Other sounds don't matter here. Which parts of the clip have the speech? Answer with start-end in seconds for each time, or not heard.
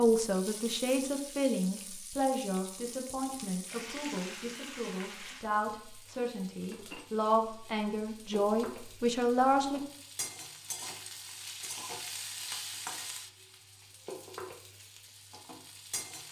0.0-9.8.